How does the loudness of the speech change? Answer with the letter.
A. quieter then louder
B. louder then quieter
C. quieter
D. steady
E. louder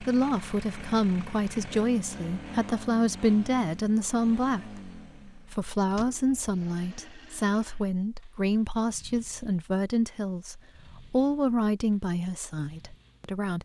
D.